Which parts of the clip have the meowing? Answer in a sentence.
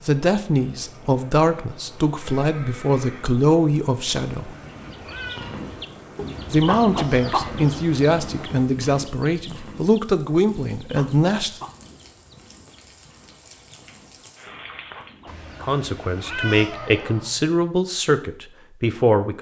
The meowing can be heard from 4.2 to 5.6 s and from 15.2 to 16.7 s.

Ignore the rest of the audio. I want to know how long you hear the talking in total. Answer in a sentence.
The talking can be heard for 13 seconds in total.